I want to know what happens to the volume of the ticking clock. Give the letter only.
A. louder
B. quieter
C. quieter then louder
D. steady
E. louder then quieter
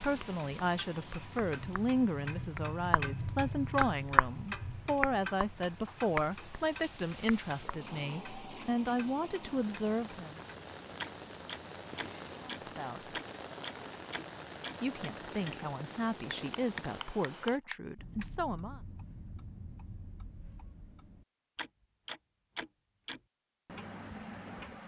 E.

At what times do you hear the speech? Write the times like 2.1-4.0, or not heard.
0.0-10.4, 12.4-13.2, 14.8-18.8.